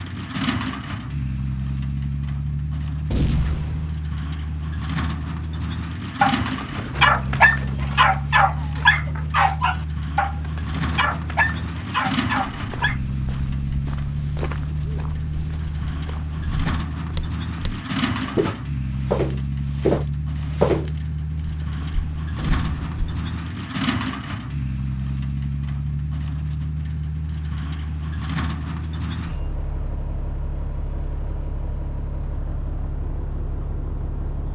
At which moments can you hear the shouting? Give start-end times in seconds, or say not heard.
not heard.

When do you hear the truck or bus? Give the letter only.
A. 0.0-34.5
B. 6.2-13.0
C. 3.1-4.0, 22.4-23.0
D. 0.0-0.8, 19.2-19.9
A.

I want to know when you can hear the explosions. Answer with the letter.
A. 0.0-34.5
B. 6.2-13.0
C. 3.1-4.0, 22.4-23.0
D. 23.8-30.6
C.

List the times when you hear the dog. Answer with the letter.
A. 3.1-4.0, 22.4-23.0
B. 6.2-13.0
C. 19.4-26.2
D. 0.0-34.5
B.